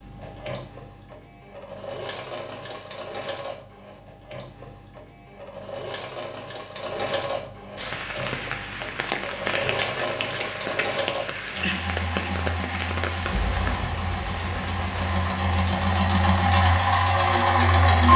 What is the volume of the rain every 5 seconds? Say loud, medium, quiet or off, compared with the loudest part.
off, loud, loud, medium.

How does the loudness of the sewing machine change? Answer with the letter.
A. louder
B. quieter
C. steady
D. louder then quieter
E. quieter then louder
A.